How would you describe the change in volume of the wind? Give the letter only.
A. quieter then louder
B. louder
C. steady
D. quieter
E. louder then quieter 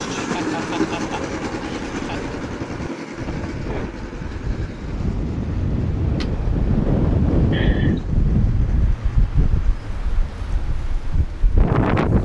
E.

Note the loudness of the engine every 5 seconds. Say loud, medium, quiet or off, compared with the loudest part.
loud, quiet, quiet.